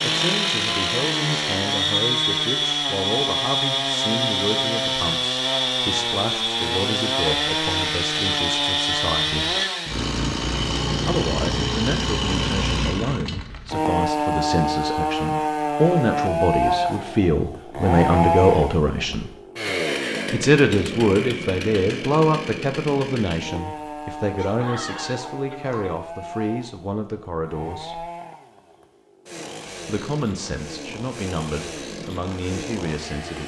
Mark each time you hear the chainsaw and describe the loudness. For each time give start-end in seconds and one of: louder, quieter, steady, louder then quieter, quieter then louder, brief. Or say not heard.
0.0-33.4 quieter.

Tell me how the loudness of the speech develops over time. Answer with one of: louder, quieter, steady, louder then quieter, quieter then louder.
louder then quieter.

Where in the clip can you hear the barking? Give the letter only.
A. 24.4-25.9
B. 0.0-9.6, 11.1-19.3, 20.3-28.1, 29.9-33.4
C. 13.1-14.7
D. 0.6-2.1
A.